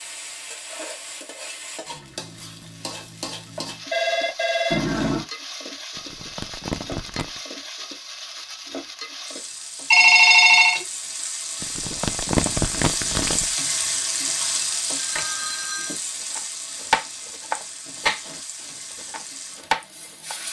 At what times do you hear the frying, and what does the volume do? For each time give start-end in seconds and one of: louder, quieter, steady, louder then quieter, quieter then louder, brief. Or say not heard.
0.0-20.4 louder then quieter.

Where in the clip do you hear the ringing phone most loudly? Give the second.
10 s.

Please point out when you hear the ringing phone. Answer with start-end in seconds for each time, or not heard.
3.9-5.2, 9.9-10.8, 14.4-15.9.